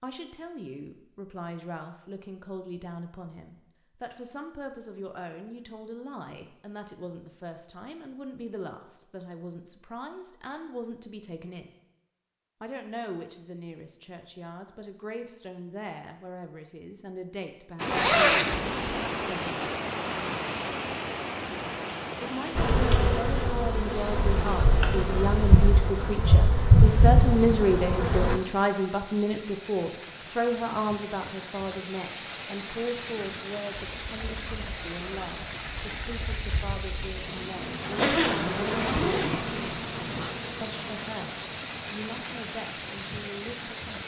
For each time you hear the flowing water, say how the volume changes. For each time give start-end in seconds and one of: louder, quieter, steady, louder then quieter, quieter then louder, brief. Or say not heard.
17.8-44.0 quieter then louder.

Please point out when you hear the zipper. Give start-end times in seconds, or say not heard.
17.9-19.0, 38.0-40.4.